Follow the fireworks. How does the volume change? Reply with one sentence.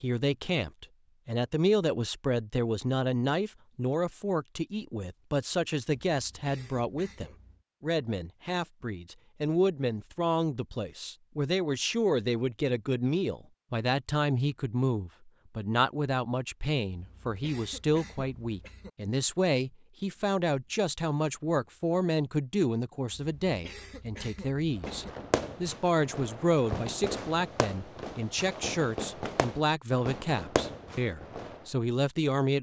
The volume of the fireworks stays about the same.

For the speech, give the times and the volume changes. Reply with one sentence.
The speech can be heard from 0.0 to 32.5 s, at a steady volume.